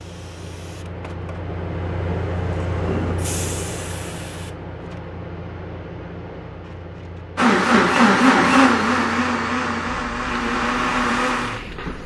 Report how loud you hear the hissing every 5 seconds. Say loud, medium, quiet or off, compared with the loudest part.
loud, medium, medium.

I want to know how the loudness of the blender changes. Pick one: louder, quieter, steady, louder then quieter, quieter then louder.
quieter.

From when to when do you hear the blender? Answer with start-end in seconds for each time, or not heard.
7.3-12.0.